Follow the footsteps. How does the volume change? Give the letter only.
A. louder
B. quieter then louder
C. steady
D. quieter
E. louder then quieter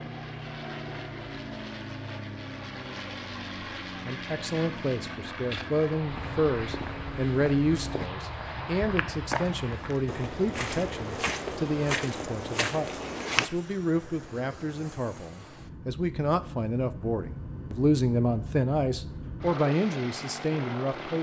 A.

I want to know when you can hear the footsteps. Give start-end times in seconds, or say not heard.
5.3-13.5.